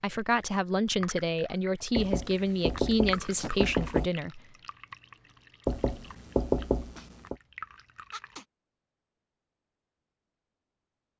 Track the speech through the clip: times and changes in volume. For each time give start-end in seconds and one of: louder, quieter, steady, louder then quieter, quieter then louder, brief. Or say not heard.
0.0-4.4 steady.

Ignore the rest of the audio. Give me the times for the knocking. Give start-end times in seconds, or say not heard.
1.9-4.1, 5.7-7.3.